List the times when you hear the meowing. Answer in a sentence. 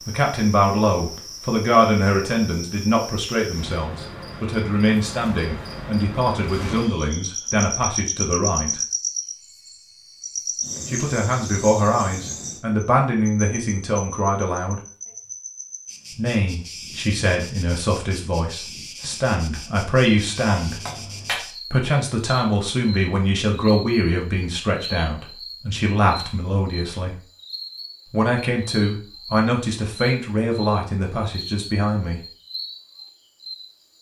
The meowing can be heard from 20.1 to 21.4 s.